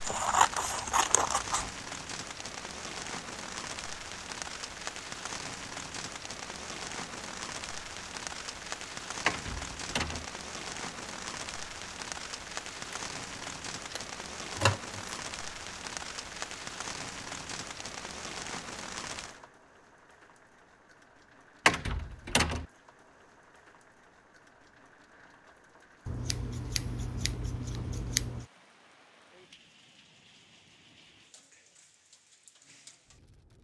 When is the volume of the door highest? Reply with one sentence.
The loudest moment of the door is at 22 seconds.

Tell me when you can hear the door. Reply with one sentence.
The door can be heard from 9.2 to 10.2 s and from 21.6 to 22.6 s.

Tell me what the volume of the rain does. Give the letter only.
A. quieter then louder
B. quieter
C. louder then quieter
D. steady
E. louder
B.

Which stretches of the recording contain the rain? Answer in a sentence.
The rain can be heard from 0.0 to 33.5 s.